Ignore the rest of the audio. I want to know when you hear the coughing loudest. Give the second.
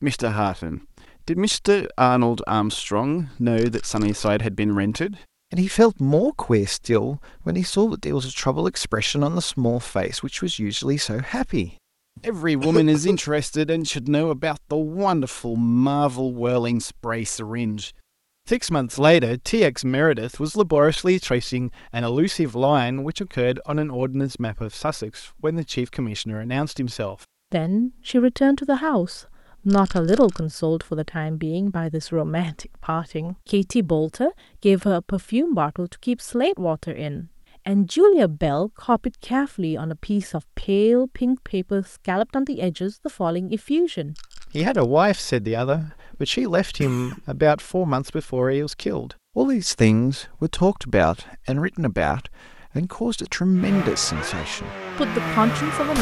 13 s.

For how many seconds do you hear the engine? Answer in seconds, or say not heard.
2 s.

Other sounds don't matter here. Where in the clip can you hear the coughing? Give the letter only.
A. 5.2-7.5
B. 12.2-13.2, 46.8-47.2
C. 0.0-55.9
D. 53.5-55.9
B.